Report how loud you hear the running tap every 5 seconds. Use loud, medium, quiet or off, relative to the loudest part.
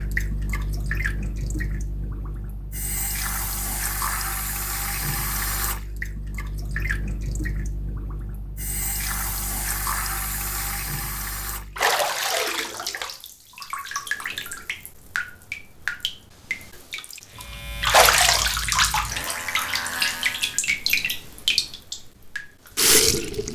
medium, medium, medium, loud, loud.